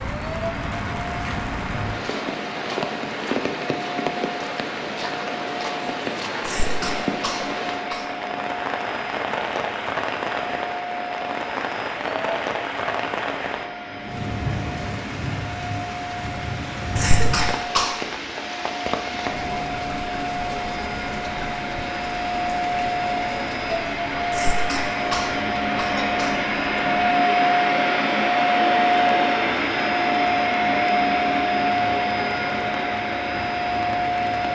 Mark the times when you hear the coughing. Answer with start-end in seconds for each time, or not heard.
6.4-8.1, 16.9-17.9, 24.3-26.8.